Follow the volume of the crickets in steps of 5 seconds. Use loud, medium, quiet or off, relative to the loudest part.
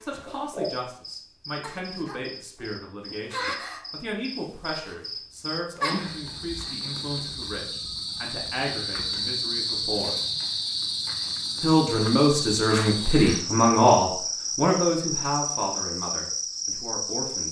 medium, loud, loud, loud.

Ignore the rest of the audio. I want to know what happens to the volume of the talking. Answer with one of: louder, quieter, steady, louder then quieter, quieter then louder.
louder then quieter.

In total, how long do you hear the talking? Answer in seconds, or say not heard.
16 s.